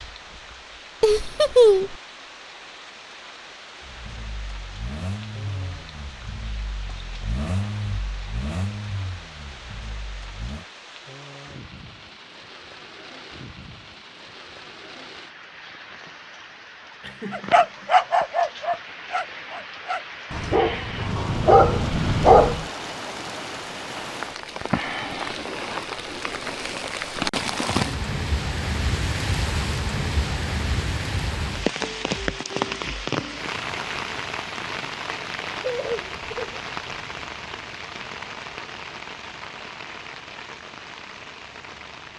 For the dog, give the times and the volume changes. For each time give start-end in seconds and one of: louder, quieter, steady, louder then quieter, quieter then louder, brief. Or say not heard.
17.3-22.6 quieter then louder.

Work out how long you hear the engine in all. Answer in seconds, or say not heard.
7 s.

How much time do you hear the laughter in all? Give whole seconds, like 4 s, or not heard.
3 s.